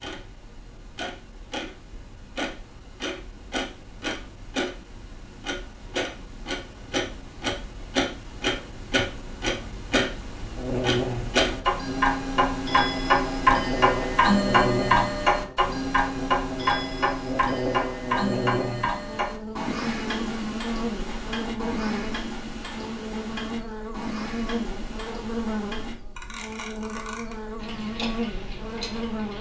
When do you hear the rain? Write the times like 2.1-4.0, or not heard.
not heard.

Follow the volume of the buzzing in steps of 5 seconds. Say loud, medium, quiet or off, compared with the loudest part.
off, off, loud, loud, loud, loud.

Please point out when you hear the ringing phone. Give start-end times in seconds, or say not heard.
not heard.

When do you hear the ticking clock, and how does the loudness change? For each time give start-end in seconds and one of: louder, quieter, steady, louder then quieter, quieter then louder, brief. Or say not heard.
0.0-29.3 louder then quieter.